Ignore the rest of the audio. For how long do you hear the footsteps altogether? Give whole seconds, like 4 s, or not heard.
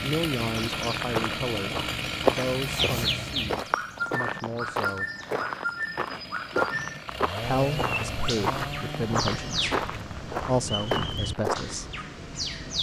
11 s.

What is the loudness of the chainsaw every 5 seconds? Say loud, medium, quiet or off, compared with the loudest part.
loud, loud, quiet.